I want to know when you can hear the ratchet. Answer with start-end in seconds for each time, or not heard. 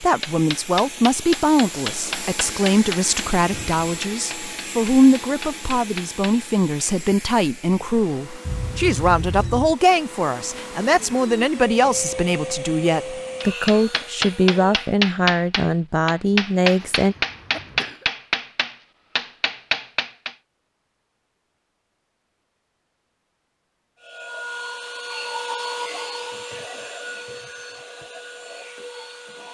not heard.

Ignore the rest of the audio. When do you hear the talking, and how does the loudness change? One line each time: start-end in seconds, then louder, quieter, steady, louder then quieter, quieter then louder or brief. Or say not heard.
0.0-17.1 steady.